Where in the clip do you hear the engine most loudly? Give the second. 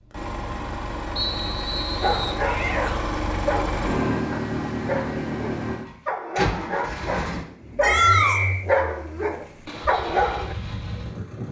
4 s.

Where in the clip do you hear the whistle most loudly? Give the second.
8 s.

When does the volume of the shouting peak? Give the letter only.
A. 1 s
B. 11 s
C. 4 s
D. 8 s
D.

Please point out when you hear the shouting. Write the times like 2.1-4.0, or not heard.
2.4-3.2, 7.8-8.4.